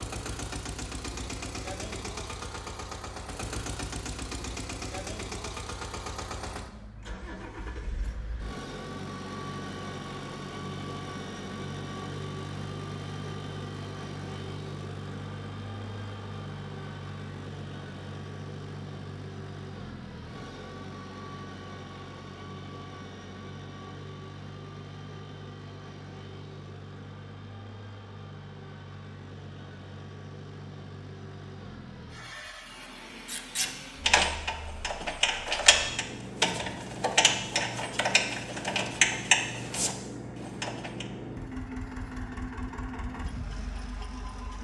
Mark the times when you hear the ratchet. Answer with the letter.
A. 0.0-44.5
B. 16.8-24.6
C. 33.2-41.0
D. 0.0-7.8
C.